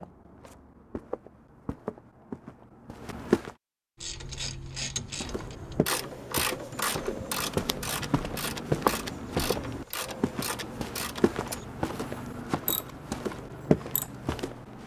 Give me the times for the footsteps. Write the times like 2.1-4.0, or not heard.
0.0-3.5, 5.1-14.8.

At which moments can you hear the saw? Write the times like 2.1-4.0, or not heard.
not heard.